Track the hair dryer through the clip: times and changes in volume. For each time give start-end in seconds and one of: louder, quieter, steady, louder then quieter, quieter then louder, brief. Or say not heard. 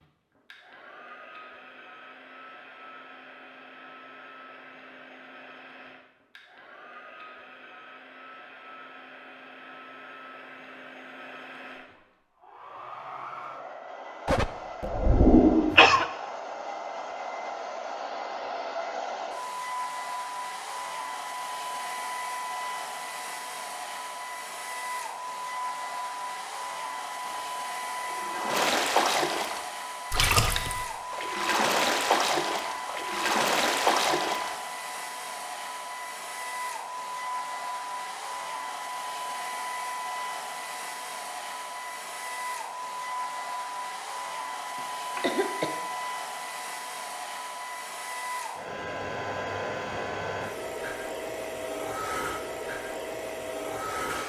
0.0-54.2 louder.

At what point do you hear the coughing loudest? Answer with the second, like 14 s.
15 s.